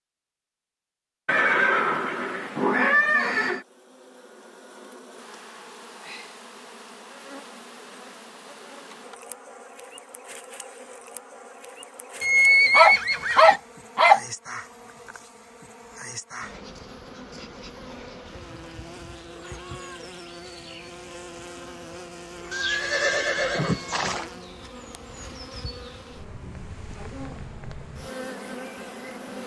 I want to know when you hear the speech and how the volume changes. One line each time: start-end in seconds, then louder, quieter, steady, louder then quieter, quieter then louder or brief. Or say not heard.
not heard.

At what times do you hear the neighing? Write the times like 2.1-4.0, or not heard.
1.2-3.6, 12.2-13.6, 22.5-24.2.